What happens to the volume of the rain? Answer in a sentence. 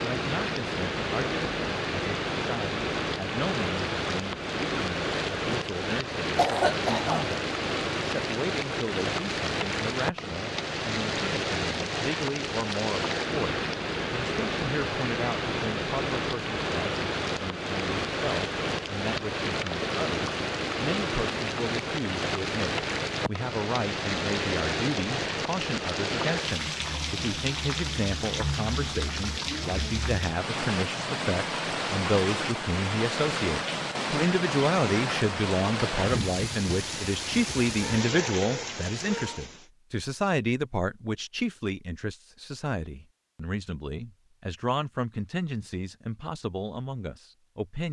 The volume of the rain stays about the same.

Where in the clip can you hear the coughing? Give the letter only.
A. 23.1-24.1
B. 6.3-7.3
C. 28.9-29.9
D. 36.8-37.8
B.